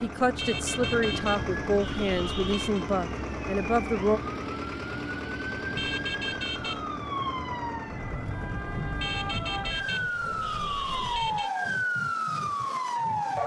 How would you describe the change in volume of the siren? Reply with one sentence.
The loudness of the siren goes up.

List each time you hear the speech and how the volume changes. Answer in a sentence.
You can hear the speech from 0.0 to 4.2 s, at a steady volume.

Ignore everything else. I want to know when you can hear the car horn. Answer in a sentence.
You can hear the car horn from 0.3 to 2.9 s, from 5.8 to 7.0 s and from 9.0 to 11.5 s.